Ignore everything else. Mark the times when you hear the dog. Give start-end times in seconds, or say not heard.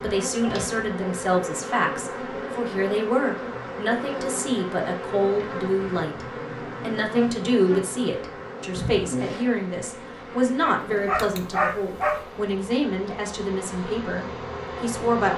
10.6-12.2.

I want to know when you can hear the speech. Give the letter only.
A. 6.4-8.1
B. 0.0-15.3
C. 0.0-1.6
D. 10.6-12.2
B.